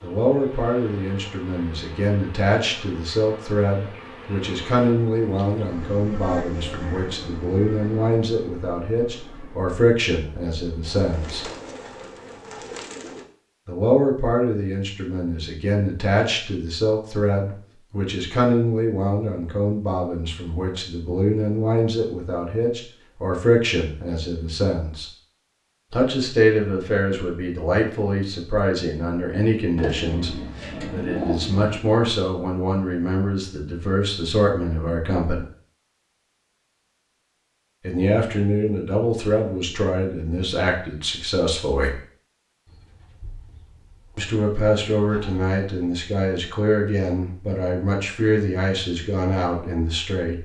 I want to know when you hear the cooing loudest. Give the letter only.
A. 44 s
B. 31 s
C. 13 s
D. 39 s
B.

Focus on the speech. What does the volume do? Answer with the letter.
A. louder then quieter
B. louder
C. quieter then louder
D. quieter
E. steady
E.